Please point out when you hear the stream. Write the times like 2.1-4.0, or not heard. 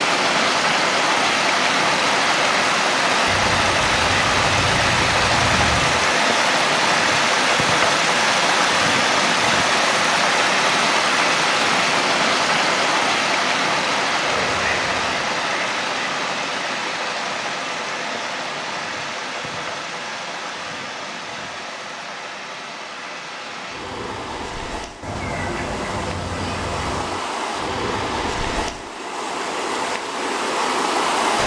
0.0-31.4.